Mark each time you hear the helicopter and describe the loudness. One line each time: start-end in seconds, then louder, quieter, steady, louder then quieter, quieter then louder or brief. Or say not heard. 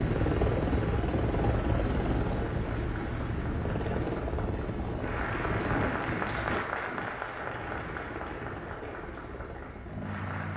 0.0-10.5 quieter.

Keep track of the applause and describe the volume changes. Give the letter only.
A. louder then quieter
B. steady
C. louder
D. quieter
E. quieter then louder
A.